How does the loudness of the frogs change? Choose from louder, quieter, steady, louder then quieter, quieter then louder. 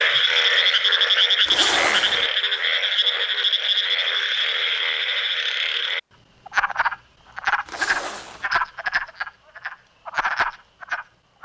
quieter.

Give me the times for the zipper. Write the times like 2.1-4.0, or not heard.
1.4-2.3, 7.7-8.5.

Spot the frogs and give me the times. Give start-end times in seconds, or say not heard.
0.0-11.4.